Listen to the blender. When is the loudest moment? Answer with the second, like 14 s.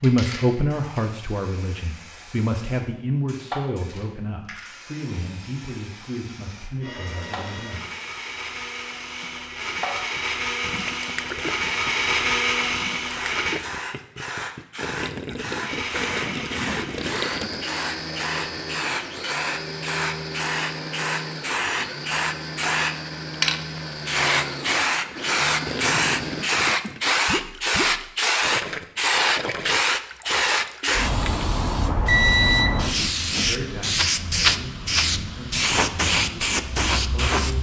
12 s.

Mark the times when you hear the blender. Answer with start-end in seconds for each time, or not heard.
6.8-13.7, 15.6-26.6.